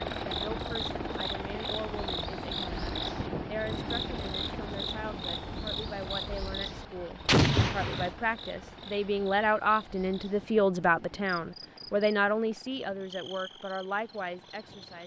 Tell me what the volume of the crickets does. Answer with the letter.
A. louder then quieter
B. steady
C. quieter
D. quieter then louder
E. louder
C.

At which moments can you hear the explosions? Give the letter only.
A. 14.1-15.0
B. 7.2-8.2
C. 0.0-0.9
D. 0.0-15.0
B.